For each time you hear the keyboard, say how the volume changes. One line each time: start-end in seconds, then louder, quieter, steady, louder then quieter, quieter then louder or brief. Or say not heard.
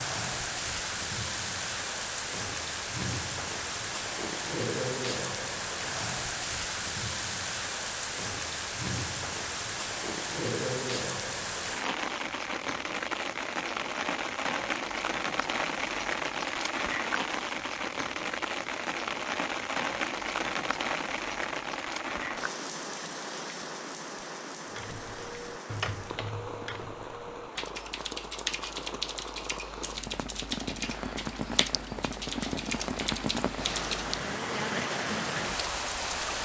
24.7-34.2 steady.